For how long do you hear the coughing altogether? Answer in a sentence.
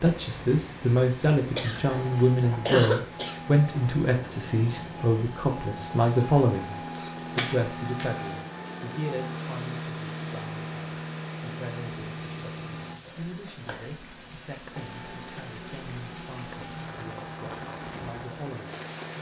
The coughing can be heard for 4 seconds in total.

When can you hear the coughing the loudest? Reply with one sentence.
The loudest moment of the coughing is at 3 seconds.